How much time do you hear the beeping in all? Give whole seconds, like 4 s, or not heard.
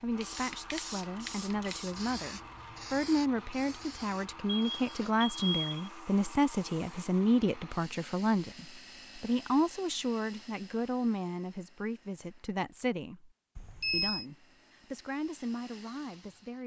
2 s.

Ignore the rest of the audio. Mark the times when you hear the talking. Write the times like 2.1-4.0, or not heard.
0.0-13.3, 13.9-16.6.